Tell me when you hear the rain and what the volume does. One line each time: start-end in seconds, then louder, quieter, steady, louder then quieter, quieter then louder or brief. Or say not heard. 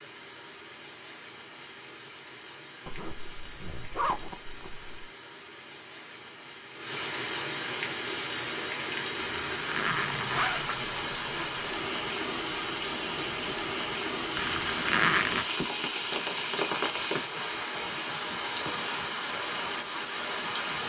0.0-20.8 louder.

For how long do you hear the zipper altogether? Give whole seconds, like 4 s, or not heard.
6 s.